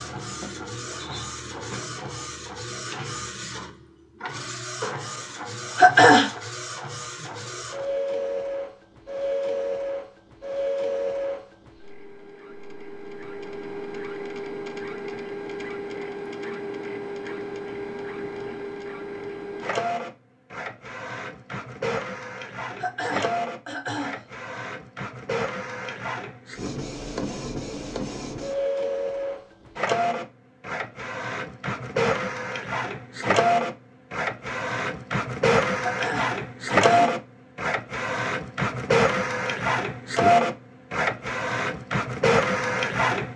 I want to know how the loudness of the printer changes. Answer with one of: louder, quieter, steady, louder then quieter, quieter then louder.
louder.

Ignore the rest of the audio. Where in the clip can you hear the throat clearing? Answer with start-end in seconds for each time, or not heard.
5.8-6.3, 22.8-24.2, 35.8-37.1.